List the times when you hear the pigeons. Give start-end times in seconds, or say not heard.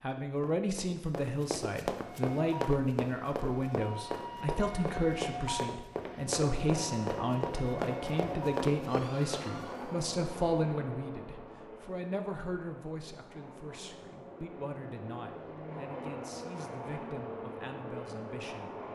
not heard.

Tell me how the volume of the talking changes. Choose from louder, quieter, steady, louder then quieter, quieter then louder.
quieter.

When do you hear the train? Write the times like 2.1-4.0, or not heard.
6.3-18.8.